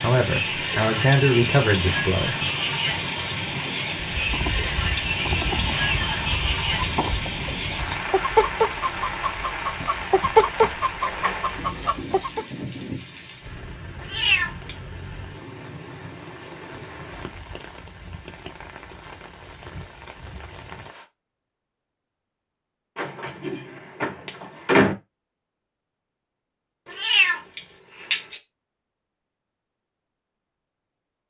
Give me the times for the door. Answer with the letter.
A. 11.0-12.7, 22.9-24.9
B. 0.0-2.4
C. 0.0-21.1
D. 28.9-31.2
A.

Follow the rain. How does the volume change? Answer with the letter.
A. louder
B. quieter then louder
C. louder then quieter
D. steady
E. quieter
E.